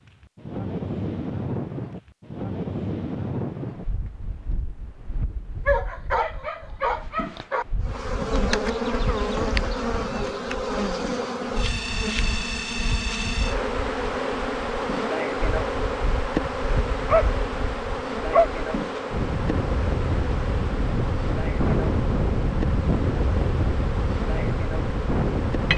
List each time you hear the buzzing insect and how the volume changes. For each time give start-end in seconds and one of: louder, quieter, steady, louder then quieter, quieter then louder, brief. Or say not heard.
7.8-25.7 quieter.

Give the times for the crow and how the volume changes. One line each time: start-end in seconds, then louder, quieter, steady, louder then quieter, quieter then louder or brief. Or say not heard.
not heard.